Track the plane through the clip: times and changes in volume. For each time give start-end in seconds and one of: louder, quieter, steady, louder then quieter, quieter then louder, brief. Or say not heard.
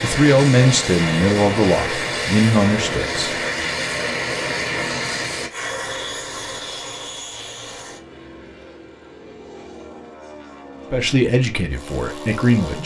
0.0-12.8 quieter.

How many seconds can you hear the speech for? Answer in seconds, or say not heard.
5 s.